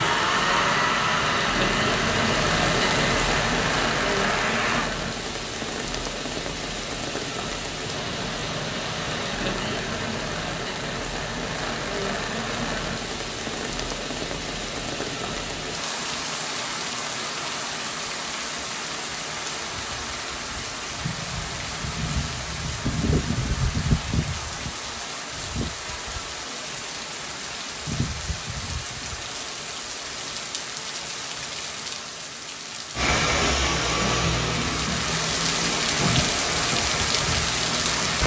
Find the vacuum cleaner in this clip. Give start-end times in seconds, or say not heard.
0.0-4.9, 33.0-38.2.